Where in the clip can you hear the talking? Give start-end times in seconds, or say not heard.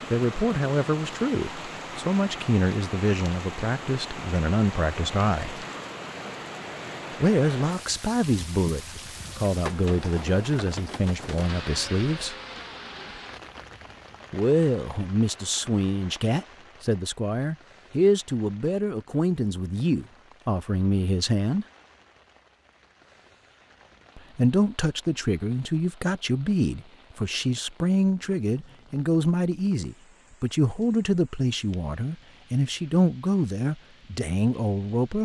0.1-5.7, 7.2-12.3, 14.3-21.6, 24.1-35.2.